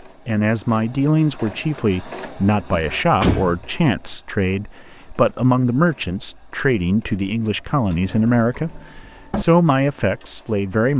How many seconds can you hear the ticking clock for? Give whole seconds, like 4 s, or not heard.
not heard.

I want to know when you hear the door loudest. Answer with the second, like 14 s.
3 s.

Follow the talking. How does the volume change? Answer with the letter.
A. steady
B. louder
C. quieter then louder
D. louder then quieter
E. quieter
A.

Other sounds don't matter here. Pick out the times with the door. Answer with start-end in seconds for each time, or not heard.
2.7-3.6, 8.0-9.4.